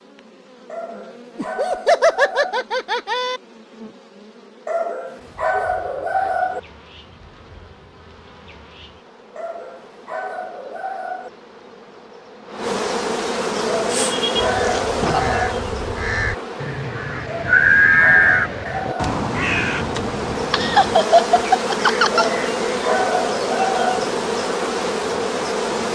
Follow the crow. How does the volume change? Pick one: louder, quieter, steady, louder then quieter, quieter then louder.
louder then quieter.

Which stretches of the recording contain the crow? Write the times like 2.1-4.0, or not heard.
13.6-22.9.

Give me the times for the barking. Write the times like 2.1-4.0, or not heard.
0.7-2.6, 4.7-6.6, 9.3-11.3, 13.7-15.6, 17.2-19.2, 22.1-24.1.